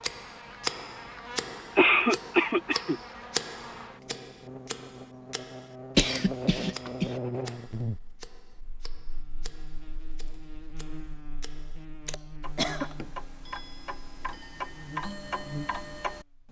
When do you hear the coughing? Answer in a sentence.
The coughing can be heard from 1.8 to 3.0 s, from 6.0 to 7.1 s and from 12.1 to 13.2 s.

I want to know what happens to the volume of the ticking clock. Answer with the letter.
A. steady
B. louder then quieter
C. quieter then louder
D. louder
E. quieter
C.